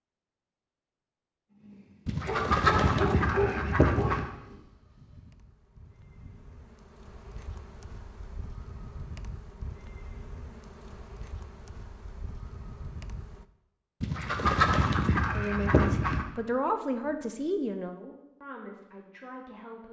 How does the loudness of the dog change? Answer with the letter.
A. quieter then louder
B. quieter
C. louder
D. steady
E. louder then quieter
B.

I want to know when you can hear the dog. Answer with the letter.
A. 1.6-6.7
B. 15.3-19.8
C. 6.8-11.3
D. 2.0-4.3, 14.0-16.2
A.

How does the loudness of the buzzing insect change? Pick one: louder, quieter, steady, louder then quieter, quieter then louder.
louder.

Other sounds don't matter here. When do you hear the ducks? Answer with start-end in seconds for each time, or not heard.
2.0-4.3, 14.0-16.2.